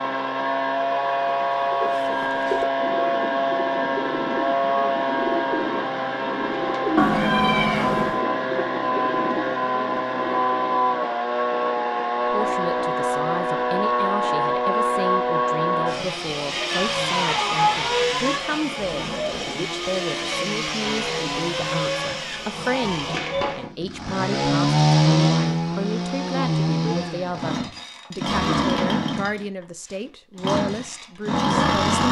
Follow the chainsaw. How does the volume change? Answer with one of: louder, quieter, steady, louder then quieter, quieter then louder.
steady.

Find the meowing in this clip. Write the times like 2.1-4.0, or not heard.
7.0-8.2.